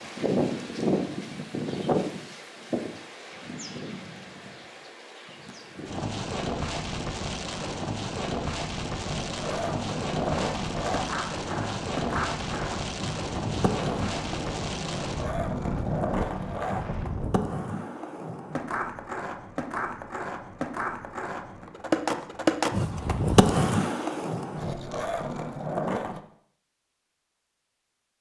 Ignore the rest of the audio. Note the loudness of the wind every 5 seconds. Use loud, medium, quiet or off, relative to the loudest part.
loud, loud, loud, loud, off, off.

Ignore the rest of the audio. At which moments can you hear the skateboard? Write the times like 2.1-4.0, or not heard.
9.0-26.2.